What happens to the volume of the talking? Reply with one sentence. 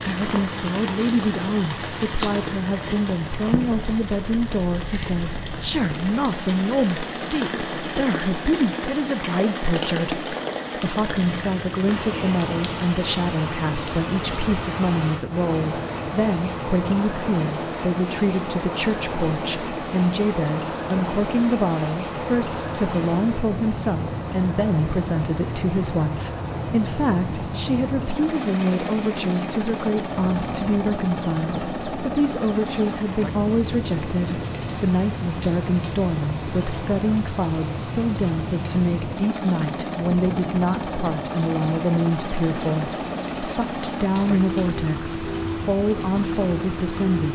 The volume of the talking stays about the same.